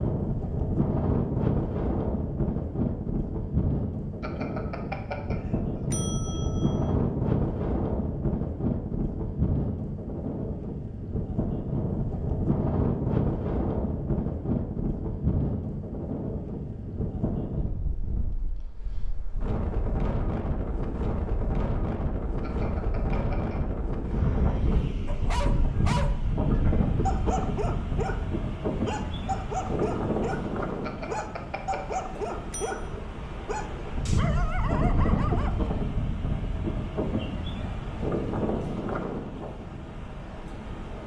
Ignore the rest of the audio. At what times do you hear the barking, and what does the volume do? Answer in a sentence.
You can hear the barking from 25.1 to 35.7 s, at a steady volume.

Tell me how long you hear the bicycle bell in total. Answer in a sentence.
You can hear the bicycle bell for 6 seconds altogether.